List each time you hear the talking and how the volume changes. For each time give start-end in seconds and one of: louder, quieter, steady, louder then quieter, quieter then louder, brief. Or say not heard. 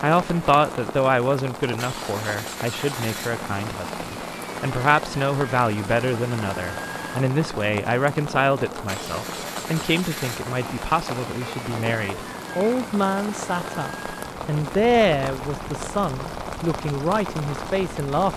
0.0-18.3 steady.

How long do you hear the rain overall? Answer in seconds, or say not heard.
18 s.